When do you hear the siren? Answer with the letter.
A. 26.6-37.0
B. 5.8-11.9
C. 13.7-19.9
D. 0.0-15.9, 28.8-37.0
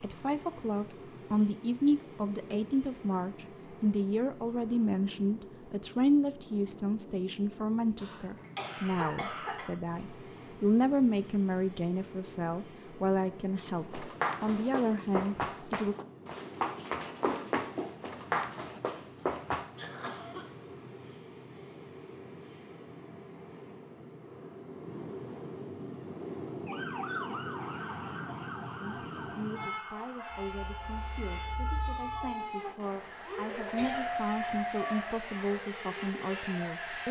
A.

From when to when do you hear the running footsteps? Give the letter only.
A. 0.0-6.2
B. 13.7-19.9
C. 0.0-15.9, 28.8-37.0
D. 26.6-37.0
B.